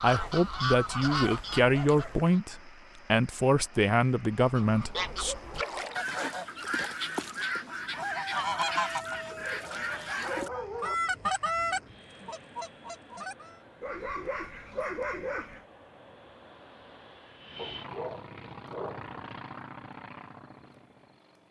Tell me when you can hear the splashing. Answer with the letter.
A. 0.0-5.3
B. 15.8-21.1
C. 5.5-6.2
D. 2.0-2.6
C.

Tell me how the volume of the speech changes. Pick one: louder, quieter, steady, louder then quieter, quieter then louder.
steady.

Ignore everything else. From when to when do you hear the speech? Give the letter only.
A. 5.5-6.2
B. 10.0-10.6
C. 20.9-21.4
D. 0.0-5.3
D.